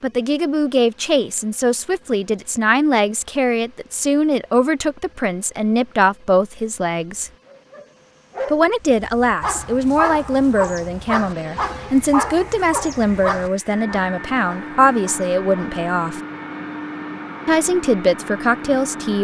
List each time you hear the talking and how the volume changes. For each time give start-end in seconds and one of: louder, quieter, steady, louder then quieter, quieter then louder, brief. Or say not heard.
0.0-7.3 steady
8.5-16.2 steady
17.4-19.1 brief.